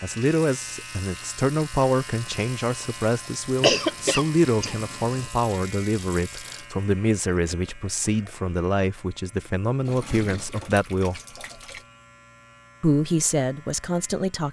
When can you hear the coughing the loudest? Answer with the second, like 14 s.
4 s.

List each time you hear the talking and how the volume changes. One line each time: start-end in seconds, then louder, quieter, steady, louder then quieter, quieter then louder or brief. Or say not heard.
0.0-11.2 steady
12.8-14.4 brief.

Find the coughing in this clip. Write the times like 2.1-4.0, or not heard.
3.6-5.3.